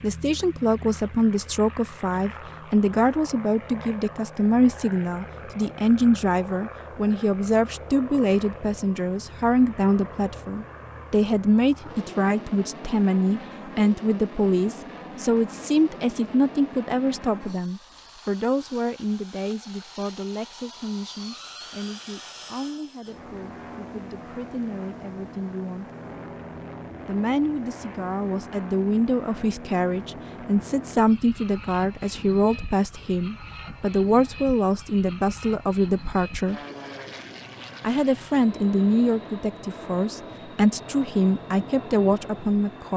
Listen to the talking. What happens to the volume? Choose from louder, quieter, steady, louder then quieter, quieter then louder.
quieter then louder.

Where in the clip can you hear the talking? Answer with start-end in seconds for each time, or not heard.
0.0-25.9, 27.1-36.6, 37.8-42.9.